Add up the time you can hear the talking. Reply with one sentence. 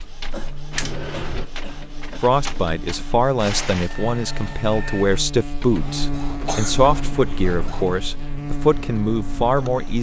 The talking can be heard for 8 seconds in total.